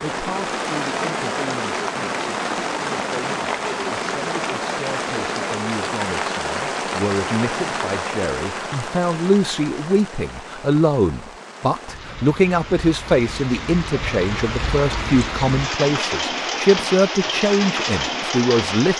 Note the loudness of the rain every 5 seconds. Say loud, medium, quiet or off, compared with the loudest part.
loud, loud, medium, loud.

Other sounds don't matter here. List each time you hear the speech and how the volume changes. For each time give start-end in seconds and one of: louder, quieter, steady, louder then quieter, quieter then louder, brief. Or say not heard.
0.0-18.9 louder.